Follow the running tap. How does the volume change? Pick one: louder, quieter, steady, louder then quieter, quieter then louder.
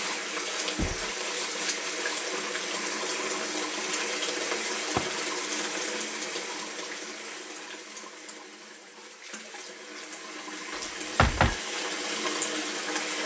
quieter then louder.